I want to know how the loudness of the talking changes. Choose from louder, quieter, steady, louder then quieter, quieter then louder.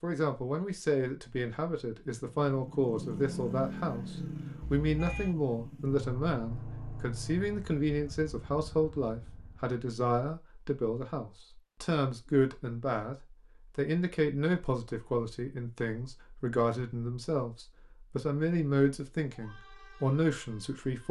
steady.